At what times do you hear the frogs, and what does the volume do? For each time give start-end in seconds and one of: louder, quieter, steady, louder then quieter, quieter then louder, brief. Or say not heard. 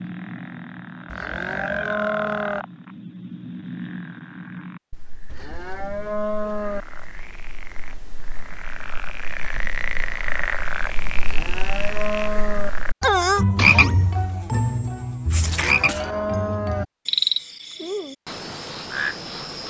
0.0-19.6 quieter then louder.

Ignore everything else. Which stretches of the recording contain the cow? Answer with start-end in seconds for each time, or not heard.
1.1-2.6, 5.2-6.8, 11.2-12.7, 15.3-16.9.